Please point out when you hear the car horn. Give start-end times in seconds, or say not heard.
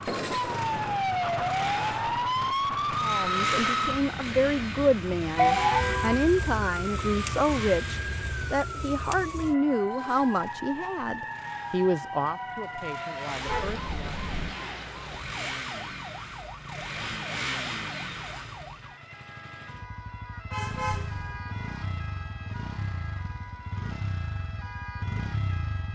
3.8-6.2, 13.4-14.6, 20.5-21.4.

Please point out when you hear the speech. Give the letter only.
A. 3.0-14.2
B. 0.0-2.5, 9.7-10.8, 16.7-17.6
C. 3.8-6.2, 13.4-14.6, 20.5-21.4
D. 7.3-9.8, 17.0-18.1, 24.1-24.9
A.